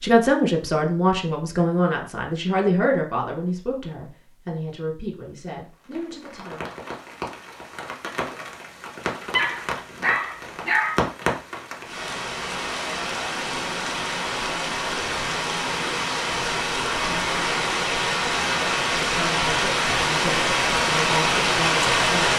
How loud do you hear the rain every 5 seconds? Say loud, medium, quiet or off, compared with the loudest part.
off, quiet, medium, loud, loud.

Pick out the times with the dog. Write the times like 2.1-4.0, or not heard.
9.2-11.1.